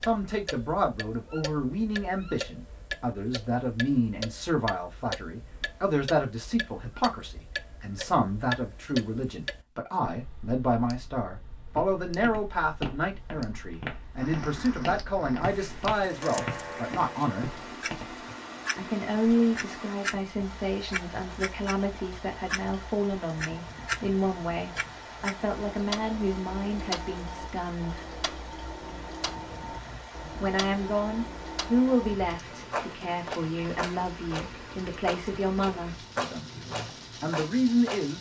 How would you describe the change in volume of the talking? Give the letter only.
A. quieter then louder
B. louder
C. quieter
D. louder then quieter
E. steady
E.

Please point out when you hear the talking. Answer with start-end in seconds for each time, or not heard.
0.0-17.5, 18.8-28.1, 30.4-38.1.